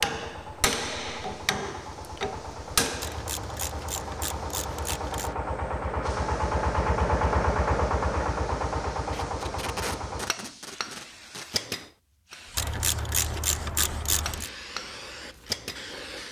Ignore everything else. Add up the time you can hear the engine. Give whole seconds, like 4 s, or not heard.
10 s.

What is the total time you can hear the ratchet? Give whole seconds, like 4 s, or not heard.
4 s.